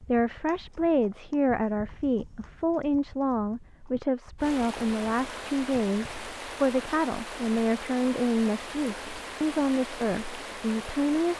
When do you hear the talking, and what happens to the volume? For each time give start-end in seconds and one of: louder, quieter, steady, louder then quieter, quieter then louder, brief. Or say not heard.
0.1-11.3 steady.